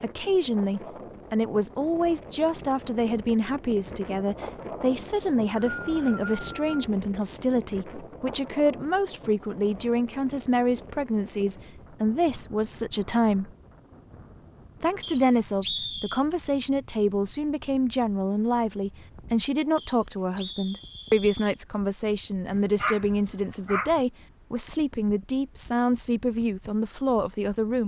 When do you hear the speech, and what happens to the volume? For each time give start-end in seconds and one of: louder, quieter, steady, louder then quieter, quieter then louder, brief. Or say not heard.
0.0-13.5 steady
14.8-27.8 steady.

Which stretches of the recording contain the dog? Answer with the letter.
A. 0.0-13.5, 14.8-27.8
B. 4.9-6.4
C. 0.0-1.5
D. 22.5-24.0
D.